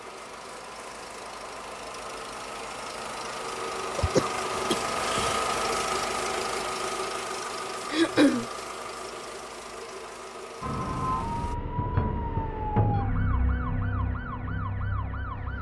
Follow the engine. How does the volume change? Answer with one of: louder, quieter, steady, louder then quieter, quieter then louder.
louder then quieter.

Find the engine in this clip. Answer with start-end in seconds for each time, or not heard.
0.0-11.6.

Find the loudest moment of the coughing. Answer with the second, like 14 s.
8 s.